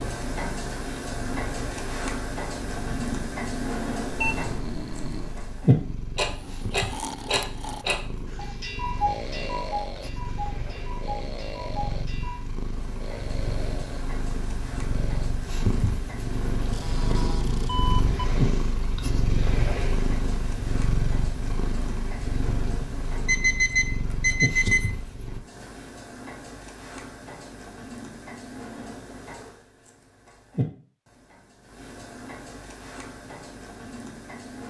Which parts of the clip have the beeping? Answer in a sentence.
The beeping can be heard from 4.0 to 5.5 s, from 16.7 to 18.2 s and from 23.2 to 25.0 s.